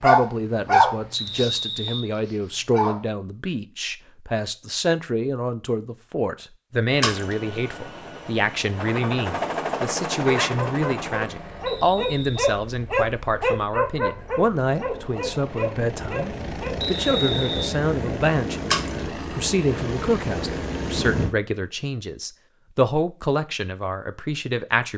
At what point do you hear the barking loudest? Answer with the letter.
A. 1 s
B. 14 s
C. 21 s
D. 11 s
A.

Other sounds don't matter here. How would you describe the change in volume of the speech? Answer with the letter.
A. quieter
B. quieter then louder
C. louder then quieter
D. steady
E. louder
D.